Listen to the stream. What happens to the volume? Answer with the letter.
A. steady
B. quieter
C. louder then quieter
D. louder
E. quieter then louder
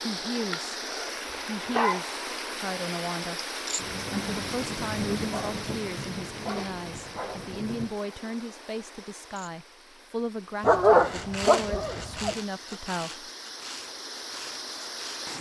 E.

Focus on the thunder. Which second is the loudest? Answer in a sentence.
The volume of the thunder peaks at 5 seconds.